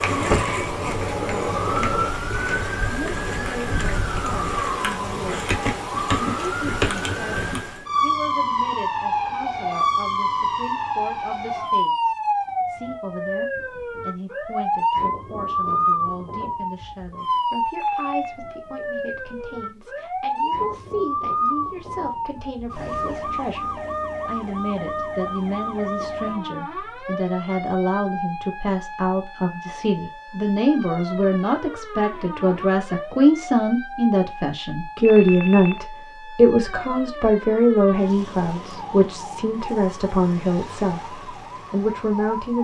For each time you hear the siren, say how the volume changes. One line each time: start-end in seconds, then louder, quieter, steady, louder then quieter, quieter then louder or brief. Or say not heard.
0.0-42.5 quieter.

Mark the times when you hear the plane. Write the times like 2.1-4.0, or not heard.
0.0-2.1.